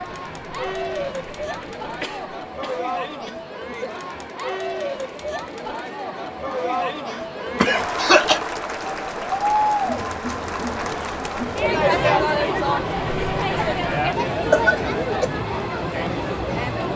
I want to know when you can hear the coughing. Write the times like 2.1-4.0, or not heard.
2.0-3.4, 7.0-8.4, 14.3-15.3.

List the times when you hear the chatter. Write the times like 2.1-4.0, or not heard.
0.0-16.9.